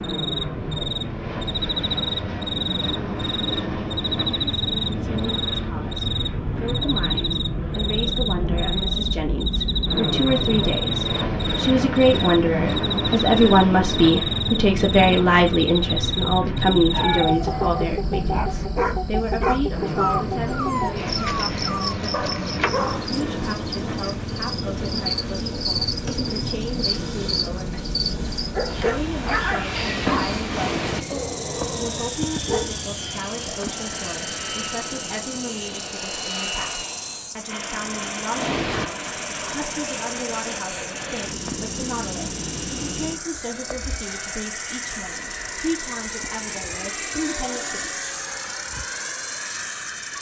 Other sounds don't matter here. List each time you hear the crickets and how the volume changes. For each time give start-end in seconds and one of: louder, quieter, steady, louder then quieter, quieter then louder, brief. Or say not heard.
0.0-50.1 quieter.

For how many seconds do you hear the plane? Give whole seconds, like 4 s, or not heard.
50 s.